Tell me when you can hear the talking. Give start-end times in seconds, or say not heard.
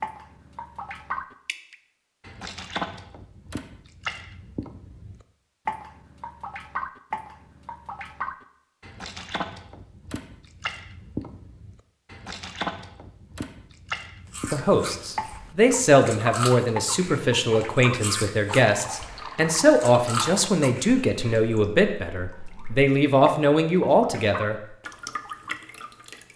14.5-24.6.